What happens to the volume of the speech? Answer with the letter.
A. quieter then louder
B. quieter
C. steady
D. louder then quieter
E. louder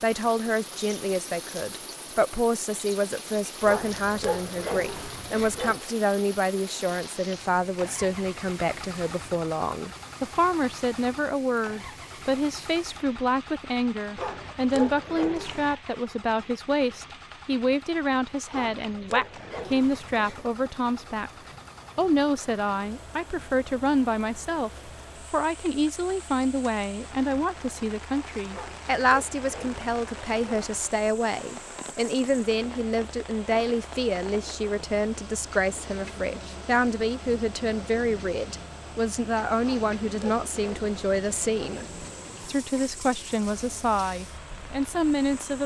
C.